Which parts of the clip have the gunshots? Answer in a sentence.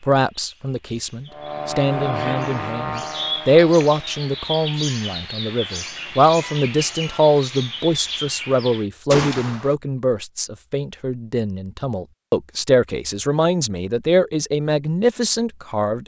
You can hear the gunshots from 9.1 to 9.8 s.